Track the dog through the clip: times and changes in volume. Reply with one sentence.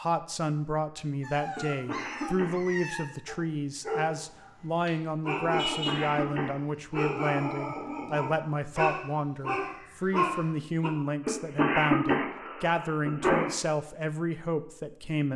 You can hear the dog from 1.2 to 10.9 s, getting louder.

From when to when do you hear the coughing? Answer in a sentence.
You can hear the coughing from 1.6 to 2.8 s, from 5.5 to 6.5 s and from 11.2 to 13.5 s.